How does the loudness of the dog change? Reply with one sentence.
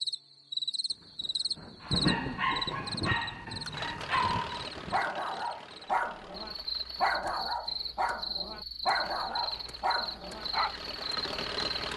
The loudness of the dog stays about the same.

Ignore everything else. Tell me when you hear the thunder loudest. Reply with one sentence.
The volume of the thunder peaks at 2 seconds.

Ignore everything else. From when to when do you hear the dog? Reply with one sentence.
The dog can be heard from 1.8 to 10.8 s.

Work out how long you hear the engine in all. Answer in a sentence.
The engine can be heard for 6 seconds in total.